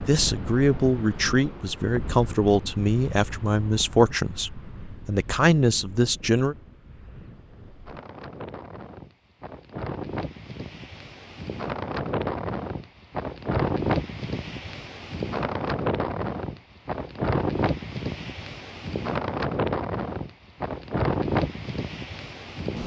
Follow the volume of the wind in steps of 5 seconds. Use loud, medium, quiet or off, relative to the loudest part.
medium, quiet, loud, loud, loud.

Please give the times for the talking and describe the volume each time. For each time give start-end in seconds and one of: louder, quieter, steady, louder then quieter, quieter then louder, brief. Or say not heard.
0.1-6.5 steady.